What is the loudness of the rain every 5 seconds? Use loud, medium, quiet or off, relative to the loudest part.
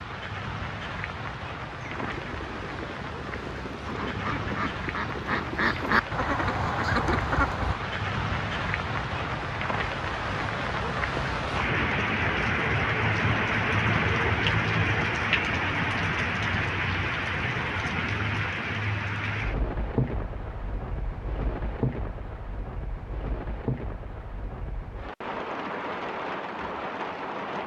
medium, medium, loud, loud, medium, medium.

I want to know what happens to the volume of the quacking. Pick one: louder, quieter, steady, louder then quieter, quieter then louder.
louder.